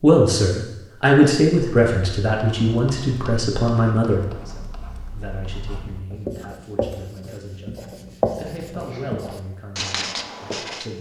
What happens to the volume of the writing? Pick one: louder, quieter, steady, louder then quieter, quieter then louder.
louder.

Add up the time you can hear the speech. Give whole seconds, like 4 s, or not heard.
11 s.